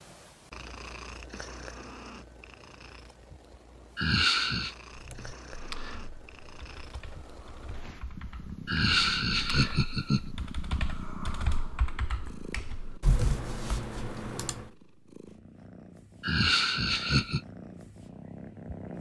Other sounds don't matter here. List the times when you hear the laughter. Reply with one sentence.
The laughter can be heard from 4.0 to 4.8 s, from 8.7 to 10.3 s and from 16.2 to 17.4 s.